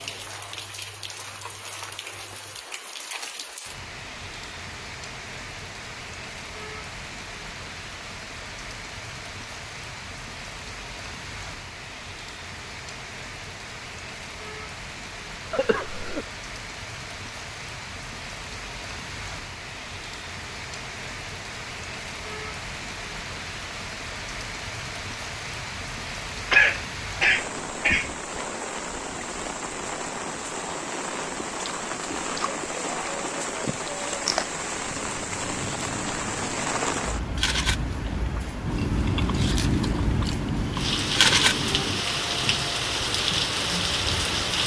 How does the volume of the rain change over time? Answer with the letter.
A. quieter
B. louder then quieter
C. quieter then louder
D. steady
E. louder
E.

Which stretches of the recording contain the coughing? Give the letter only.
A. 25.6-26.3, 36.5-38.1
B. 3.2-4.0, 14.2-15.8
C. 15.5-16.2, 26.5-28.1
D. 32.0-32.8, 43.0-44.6
C.